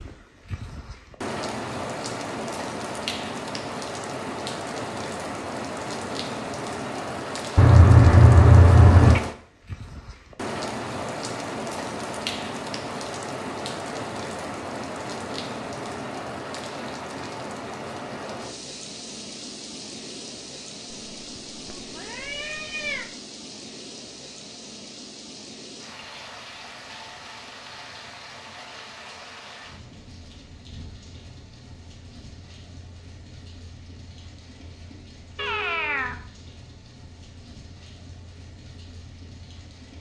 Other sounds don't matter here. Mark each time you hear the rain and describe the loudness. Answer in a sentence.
You can hear the rain from 0.0 to 39.9 s, getting quieter.